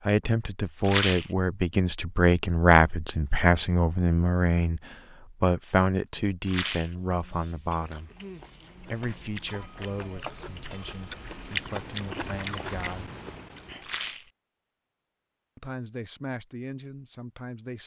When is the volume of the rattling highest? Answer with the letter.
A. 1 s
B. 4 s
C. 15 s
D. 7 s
A.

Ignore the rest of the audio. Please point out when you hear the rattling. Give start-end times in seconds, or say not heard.
0.8-1.3, 6.5-7.0, 13.8-14.3.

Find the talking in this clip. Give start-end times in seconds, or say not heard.
0.0-8.1, 8.8-13.1, 15.6-17.8.